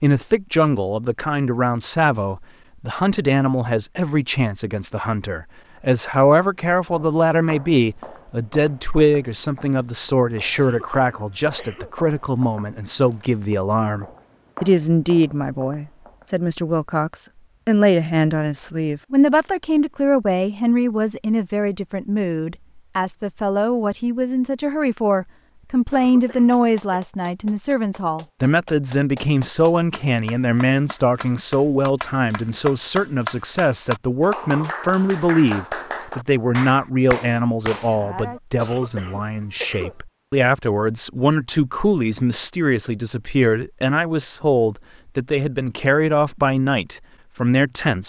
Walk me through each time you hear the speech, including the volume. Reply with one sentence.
The speech can be heard from 0.0 to 48.0 s, at a steady volume.